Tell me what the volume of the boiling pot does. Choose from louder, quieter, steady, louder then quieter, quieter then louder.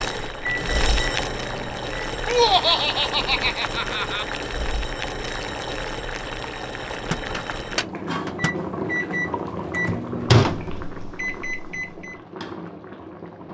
quieter.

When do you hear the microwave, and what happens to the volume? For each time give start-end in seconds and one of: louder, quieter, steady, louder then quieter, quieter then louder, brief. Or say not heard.
0.2-2.1 brief
6.9-12.2 louder then quieter.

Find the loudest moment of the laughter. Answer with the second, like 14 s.
3 s.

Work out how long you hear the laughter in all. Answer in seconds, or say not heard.
2 s.